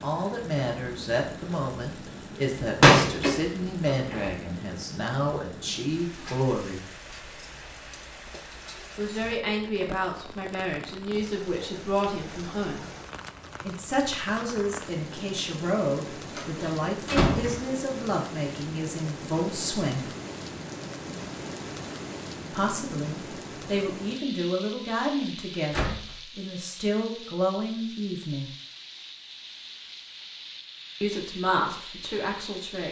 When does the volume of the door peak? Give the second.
3 s.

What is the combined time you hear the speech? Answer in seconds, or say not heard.
25 s.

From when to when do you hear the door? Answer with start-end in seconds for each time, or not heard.
2.6-4.3, 16.4-17.6, 25.7-26.1.